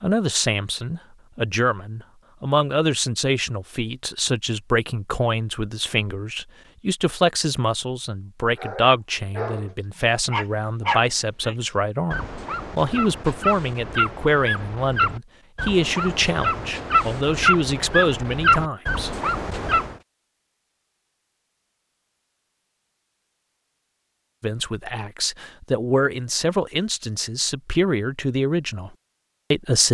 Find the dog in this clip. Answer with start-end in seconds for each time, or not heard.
8.6-19.9.